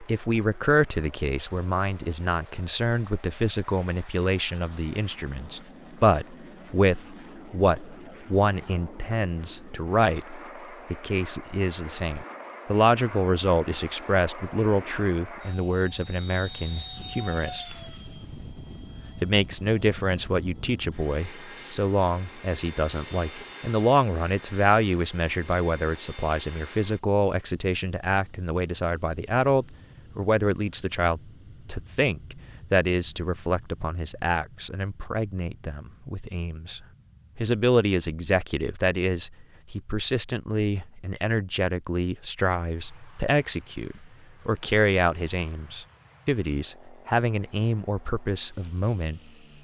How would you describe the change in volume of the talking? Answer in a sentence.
The volume of the talking stays about the same.